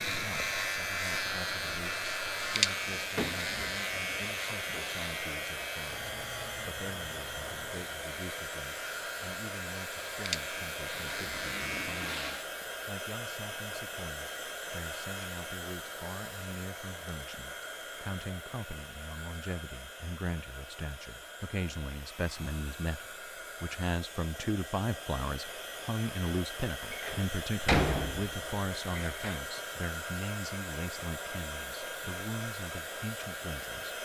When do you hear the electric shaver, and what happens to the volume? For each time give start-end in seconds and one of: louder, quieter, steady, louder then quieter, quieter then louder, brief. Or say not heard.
0.0-12.2 quieter then louder.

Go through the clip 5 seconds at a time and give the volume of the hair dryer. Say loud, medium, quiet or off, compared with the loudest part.
loud, loud, loud, loud, medium, loud, loud.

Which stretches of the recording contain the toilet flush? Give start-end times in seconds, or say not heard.
10.9-12.5.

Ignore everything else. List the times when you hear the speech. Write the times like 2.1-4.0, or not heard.
0.1-33.9.